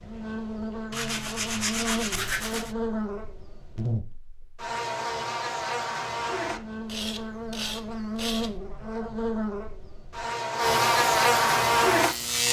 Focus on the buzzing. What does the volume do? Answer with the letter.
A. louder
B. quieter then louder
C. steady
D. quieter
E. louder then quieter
A.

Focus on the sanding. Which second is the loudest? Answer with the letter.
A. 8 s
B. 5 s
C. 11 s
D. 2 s
D.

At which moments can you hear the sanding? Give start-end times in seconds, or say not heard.
0.9-2.8, 6.8-8.6.